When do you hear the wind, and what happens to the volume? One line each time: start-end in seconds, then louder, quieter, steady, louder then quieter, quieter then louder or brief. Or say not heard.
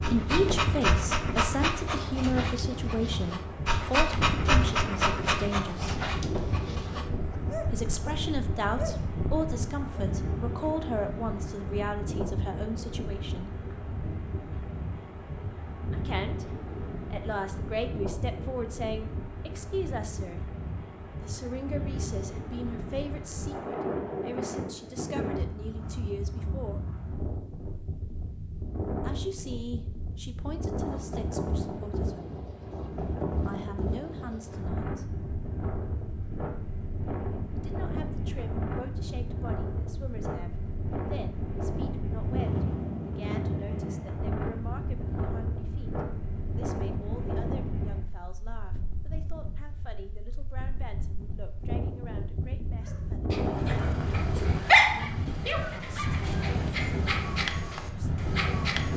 0.0-58.9 steady.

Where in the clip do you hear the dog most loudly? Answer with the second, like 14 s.
55 s.